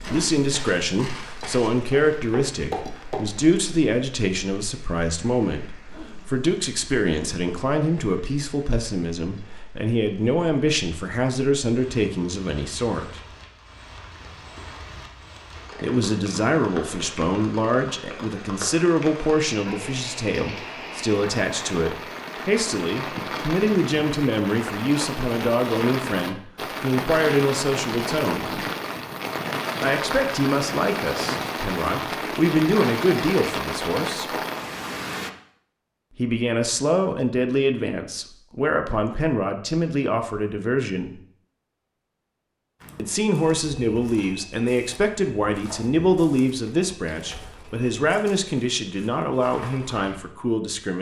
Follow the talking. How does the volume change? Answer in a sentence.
The loudness of the talking stays about the same.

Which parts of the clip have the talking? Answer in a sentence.
You can hear the talking from 0.0 to 13.2 s, from 15.8 to 28.6 s, from 29.8 to 34.4 s, from 36.1 to 41.1 s and from 43.0 to 50.9 s.